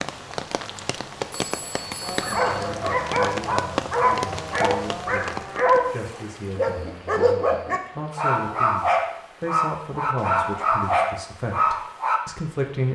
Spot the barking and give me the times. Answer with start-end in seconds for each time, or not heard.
2.0-5.9, 6.5-12.2.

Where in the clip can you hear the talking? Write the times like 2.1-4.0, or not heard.
2.2-12.9.